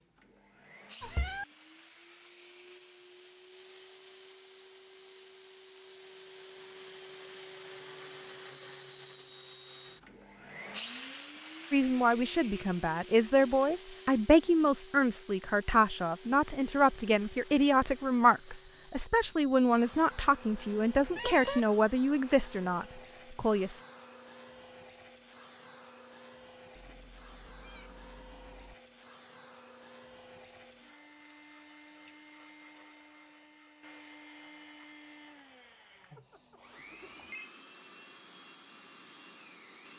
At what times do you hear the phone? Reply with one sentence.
You can hear the phone from 36.1 to 37.5 s.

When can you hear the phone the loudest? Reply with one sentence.
The volume of the phone peaks at 37 seconds.